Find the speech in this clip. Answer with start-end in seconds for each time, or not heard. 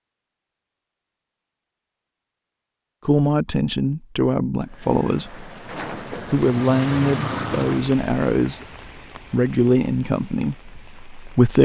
3.0-5.5, 6.1-8.7, 9.3-11.6.